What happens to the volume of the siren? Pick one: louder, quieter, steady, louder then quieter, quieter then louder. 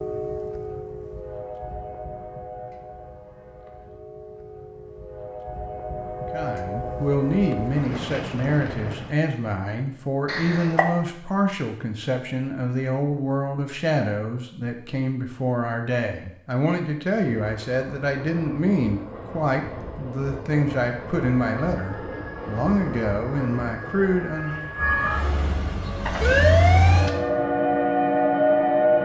louder.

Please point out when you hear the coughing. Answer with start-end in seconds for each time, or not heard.
10.2-10.8.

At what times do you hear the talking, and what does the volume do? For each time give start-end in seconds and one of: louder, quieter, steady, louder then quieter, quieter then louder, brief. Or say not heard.
6.3-24.6 steady.